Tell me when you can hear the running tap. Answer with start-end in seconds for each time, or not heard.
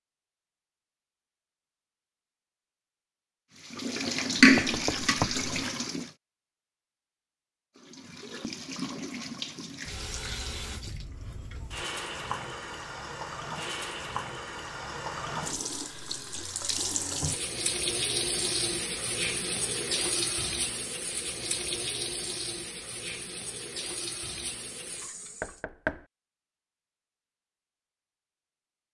3.6-6.1, 7.8-25.6.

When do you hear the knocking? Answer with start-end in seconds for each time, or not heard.
4.4-5.5, 25.4-26.1.